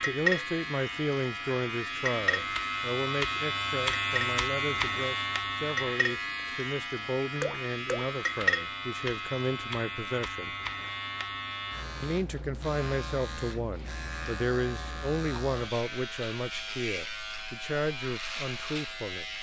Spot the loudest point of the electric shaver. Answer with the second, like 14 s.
4 s.